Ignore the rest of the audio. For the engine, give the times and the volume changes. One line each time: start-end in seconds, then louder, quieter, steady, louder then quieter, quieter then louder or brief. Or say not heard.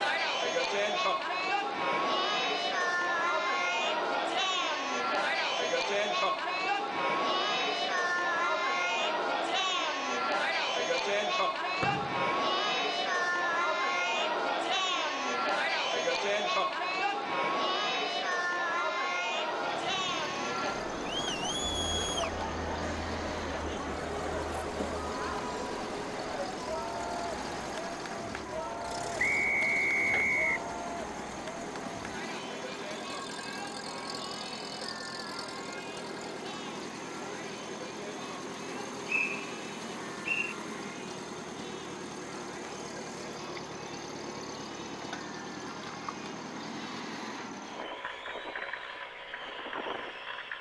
19.4-50.5 steady.